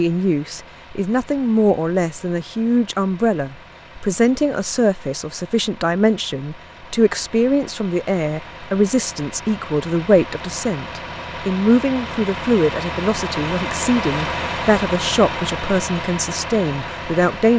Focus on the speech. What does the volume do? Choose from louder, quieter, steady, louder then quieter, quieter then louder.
steady.